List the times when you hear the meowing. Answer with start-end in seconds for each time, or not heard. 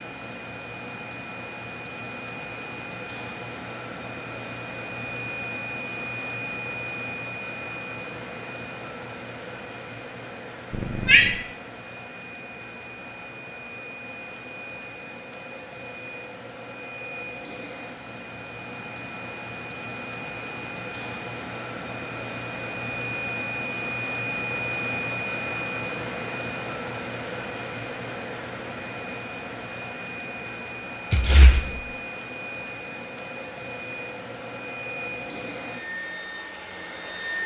10.7-11.4, 31.1-31.8.